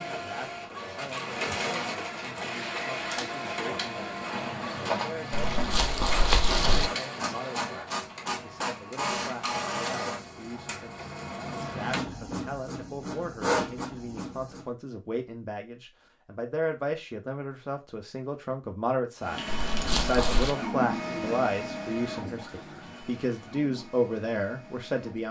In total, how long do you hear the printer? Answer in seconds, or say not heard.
21 s.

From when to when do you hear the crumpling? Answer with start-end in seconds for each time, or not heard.
5.3-6.9, 19.5-20.6.